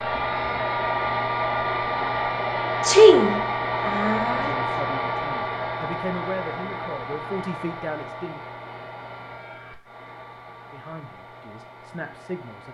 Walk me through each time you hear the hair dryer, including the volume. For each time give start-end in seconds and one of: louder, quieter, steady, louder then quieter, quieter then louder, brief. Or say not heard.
0.0-12.6 quieter.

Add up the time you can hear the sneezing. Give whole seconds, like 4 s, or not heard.
2 s.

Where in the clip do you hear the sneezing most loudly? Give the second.
3 s.